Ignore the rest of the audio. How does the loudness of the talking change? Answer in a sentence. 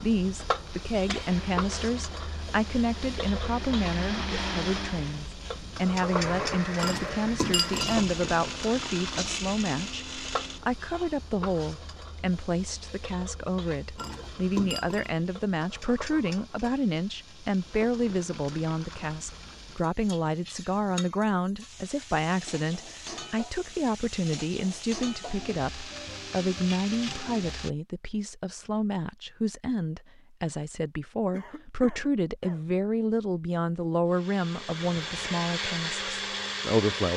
The loudness of the talking stays about the same.